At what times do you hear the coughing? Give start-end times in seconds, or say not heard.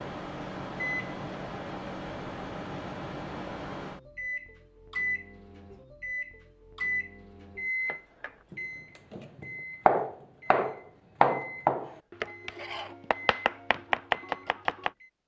not heard.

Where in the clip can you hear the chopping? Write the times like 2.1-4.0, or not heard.
7.8-14.9.